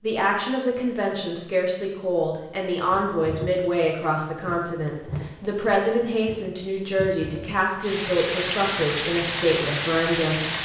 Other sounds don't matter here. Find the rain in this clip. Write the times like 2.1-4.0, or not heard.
2.9-10.5.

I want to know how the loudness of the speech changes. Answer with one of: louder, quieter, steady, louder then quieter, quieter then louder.
steady.